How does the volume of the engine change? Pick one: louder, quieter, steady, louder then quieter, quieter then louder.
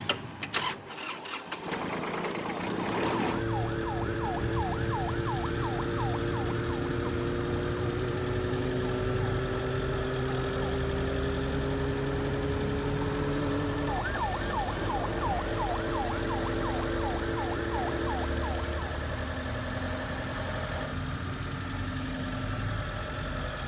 steady.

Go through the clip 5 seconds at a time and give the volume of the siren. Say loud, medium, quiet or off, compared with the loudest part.
loud, loud, loud, loud, off.